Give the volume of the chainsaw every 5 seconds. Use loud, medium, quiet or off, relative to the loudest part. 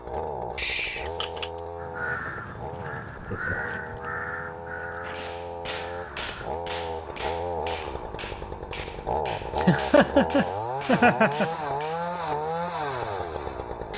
medium, loud, loud.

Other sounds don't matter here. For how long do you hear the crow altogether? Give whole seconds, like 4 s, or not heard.
5 s.